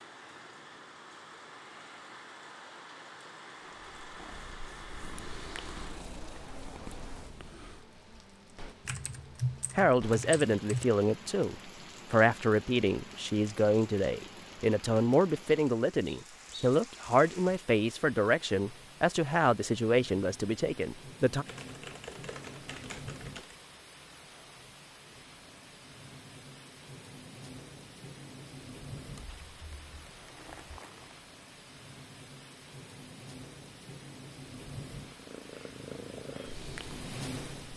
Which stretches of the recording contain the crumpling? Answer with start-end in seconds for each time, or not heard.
29.7-31.2.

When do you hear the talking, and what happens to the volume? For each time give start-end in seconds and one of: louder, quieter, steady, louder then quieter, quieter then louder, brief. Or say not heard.
9.8-21.4 steady.